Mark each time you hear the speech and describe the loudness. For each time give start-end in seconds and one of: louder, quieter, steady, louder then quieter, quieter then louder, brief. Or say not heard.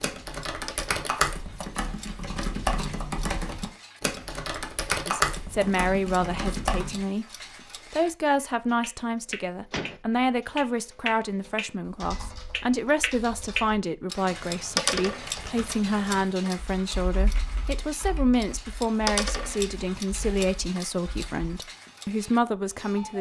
5.0-7.2 brief
7.9-23.1 steady.